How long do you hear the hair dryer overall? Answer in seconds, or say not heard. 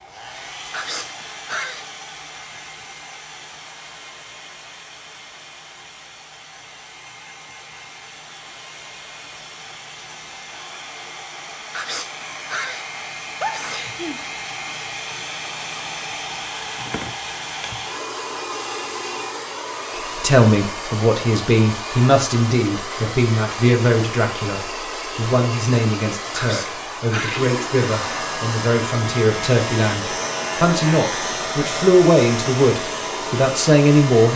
34 s.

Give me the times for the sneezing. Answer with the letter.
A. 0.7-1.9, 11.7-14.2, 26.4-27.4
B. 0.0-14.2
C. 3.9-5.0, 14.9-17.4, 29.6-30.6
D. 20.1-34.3
A.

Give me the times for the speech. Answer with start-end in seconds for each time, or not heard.
20.1-34.3.